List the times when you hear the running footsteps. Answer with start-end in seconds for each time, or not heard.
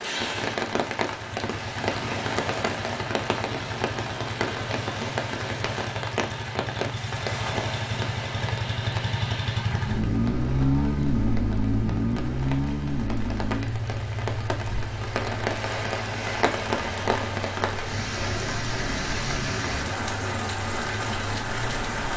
not heard.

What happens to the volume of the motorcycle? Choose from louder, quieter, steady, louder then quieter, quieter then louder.
louder then quieter.